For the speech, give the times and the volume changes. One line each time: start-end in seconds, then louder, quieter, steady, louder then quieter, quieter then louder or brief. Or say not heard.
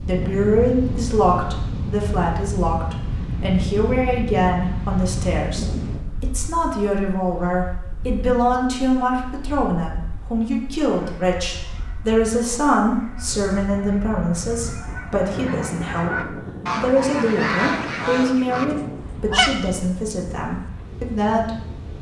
0.1-21.8 steady.